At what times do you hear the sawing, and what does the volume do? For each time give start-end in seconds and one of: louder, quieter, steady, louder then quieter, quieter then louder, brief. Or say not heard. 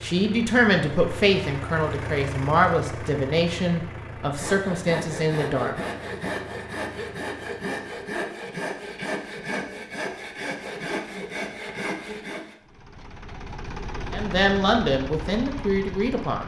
4.3-12.6 steady.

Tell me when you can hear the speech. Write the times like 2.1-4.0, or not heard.
0.0-5.8, 14.1-16.4.